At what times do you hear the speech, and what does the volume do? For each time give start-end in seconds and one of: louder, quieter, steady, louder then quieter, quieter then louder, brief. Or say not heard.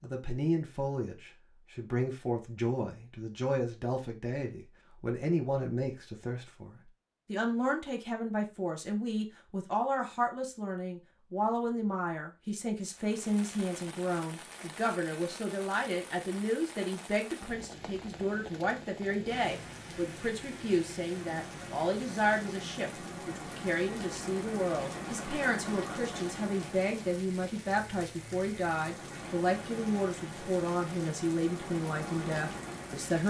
0.0-33.2 steady.